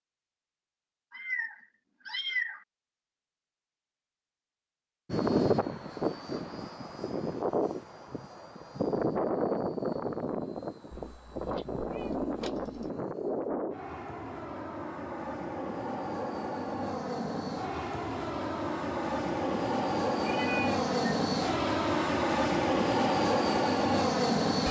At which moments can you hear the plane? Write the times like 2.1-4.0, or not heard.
5.1-24.6.